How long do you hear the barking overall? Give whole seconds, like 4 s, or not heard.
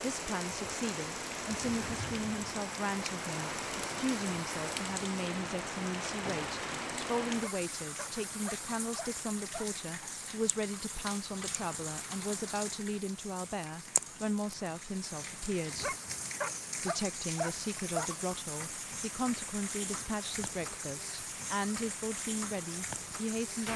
5 s.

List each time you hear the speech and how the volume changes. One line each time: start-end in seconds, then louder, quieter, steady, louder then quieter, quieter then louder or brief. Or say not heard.
0.0-15.9 steady
16.8-23.7 steady.